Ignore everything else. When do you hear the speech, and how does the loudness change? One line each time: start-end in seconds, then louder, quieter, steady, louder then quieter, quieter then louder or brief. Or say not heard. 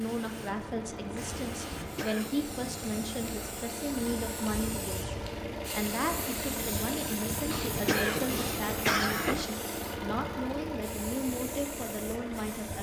0.0-12.7 steady.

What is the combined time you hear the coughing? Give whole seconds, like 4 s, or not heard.
3 s.